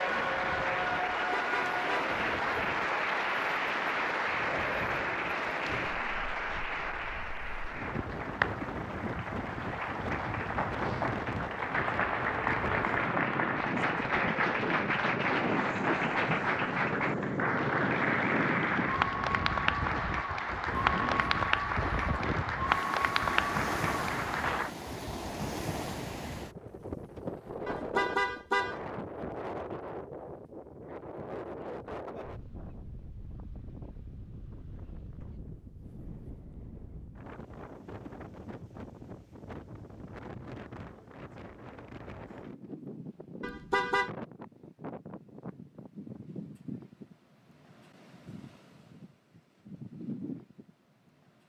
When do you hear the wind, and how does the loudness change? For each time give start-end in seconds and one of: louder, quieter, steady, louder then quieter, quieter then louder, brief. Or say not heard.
0.0-51.4 louder then quieter.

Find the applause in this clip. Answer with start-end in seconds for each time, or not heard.
0.0-24.7.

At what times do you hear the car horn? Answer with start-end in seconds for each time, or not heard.
1.1-2.1, 27.6-28.8, 43.4-44.1.